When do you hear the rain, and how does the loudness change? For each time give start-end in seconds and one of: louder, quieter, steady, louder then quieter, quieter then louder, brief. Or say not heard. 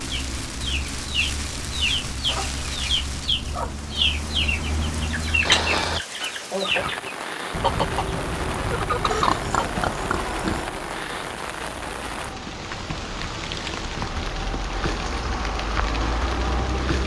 0.0-17.0 steady.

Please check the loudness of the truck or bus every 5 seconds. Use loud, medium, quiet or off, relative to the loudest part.
medium, loud, medium, loud.